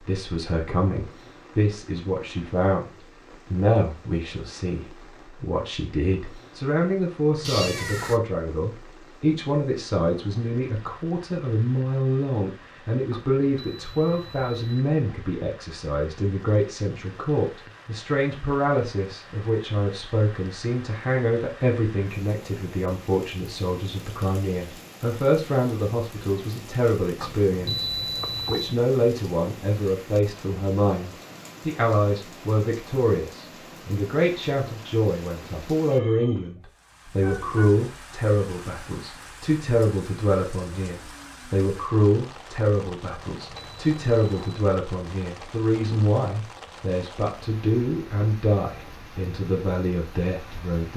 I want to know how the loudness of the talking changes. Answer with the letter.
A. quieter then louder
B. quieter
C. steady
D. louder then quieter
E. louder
C.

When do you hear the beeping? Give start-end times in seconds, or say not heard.
13.1-14.6, 27.2-28.8, 43.1-44.6.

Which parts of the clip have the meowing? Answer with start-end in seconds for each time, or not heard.
7.4-8.2, 37.2-37.8.